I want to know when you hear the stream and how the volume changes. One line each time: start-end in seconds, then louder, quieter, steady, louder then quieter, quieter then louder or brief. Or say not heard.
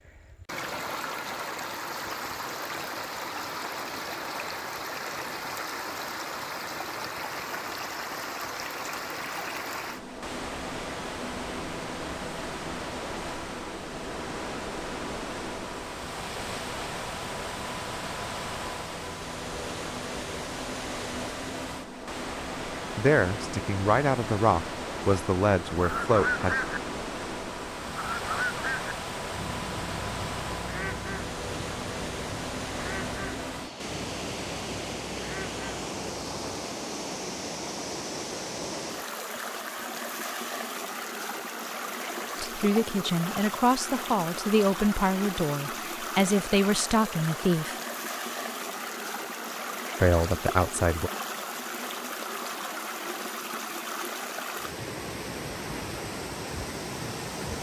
0.0-57.5 steady.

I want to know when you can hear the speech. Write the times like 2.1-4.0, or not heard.
22.9-26.6, 42.4-47.8, 50.0-51.1.